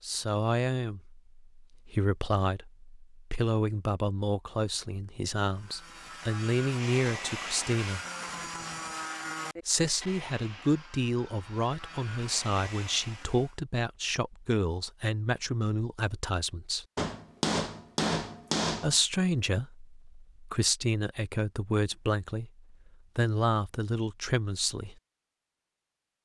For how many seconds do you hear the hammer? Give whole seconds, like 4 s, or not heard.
2 s.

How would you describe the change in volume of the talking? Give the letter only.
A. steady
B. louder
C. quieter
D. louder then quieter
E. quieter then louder
A.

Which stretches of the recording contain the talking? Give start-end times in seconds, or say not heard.
0.0-8.0, 9.7-16.9, 18.8-24.9.